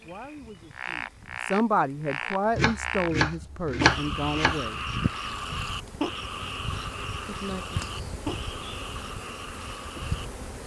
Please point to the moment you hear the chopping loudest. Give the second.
4 s.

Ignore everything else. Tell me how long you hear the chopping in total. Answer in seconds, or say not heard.
2 s.